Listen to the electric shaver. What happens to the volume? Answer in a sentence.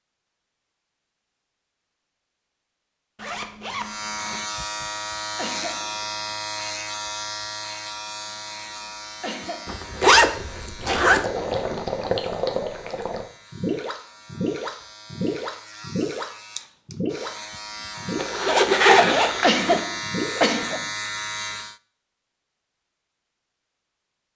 The loudness of the electric shaver goes down, then up.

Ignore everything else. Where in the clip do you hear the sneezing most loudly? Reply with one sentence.
The loudest moment of the sneezing is at 20 seconds.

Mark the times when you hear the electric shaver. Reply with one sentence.
The electric shaver can be heard from 3.8 to 21.8 s.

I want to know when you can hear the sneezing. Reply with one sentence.
You can hear the sneezing from 5.3 to 5.9 s, from 9.2 to 9.8 s and from 19.4 to 20.9 s.